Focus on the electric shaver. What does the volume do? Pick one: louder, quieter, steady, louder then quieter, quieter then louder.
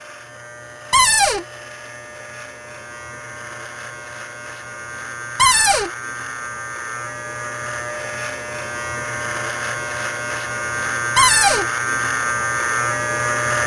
louder.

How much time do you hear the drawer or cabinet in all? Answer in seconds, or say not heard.
2 s.